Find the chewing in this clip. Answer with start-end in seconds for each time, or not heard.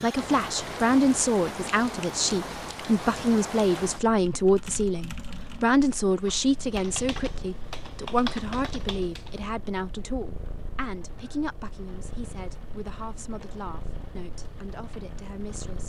not heard.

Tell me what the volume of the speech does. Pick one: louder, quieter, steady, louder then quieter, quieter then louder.
quieter.